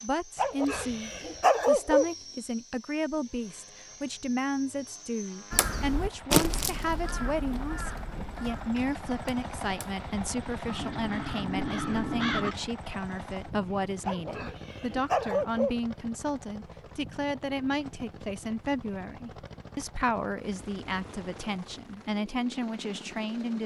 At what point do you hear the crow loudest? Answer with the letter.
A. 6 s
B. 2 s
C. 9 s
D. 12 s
A.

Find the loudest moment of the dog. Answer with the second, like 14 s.
2 s.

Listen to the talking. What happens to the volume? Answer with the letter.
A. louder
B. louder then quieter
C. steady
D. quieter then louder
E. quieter
C.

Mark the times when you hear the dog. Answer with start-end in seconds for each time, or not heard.
0.3-2.0, 14.1-15.8.